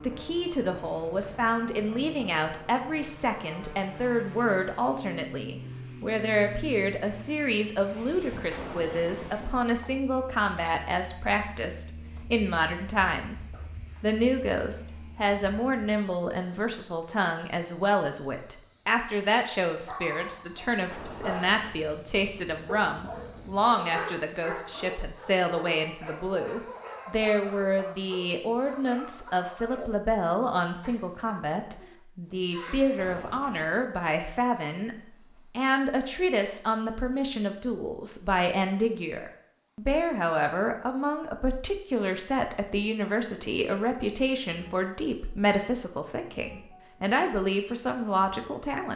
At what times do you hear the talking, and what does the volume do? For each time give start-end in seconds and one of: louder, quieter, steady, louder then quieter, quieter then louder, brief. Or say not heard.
0.0-48.9 steady.